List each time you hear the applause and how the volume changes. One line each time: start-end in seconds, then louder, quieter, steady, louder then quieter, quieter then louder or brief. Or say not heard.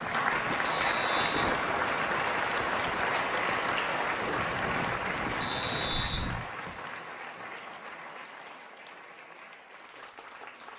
0.0-10.7 quieter.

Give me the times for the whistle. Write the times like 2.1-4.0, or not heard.
0.7-1.4, 5.4-6.9.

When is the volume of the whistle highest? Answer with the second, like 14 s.
6 s.